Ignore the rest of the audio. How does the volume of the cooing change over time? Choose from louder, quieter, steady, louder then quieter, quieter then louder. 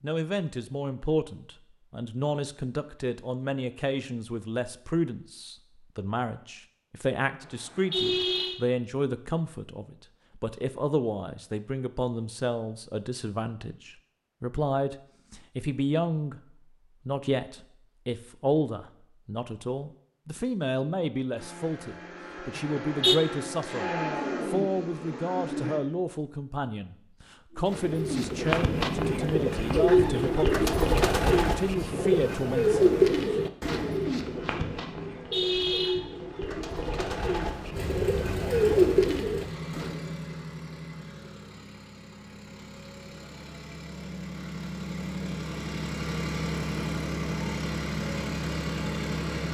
quieter then louder.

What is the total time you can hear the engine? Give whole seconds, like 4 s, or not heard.
16 s.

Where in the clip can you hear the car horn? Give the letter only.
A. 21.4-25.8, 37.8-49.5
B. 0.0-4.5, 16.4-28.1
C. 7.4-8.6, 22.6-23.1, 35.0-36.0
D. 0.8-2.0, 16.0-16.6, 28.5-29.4
C.